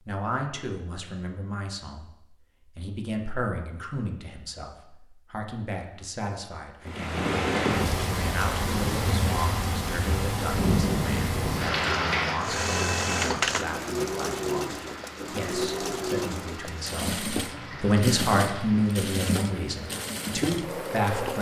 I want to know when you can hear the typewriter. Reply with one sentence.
The typewriter can't be heard in this clip.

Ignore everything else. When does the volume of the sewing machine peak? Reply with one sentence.
The volume of the sewing machine peaks at 13 seconds.